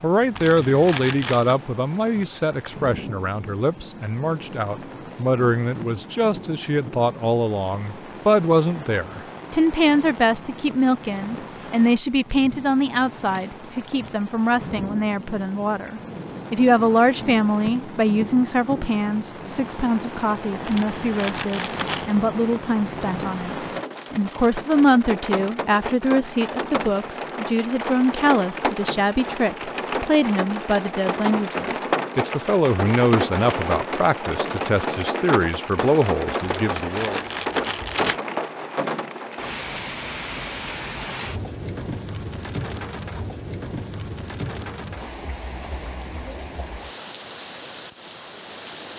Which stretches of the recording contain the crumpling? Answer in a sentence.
The crumpling can be heard from 0.3 to 1.6 s, from 20.6 to 22.1 s and from 36.4 to 38.2 s.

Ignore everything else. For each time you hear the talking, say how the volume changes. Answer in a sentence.
The talking can be heard from 0.0 to 37.1 s, at a steady volume.